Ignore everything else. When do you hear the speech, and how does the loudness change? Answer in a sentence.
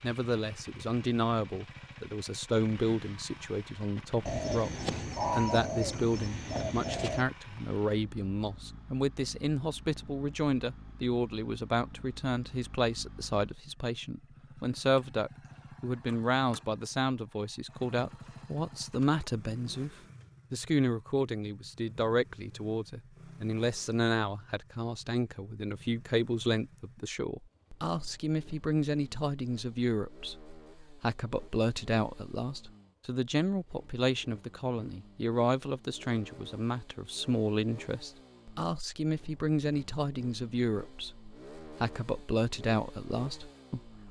The speech can be heard from 0.0 to 44.0 s, at a steady volume.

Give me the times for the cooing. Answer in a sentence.
You can hear the cooing from 4.2 to 7.2 s.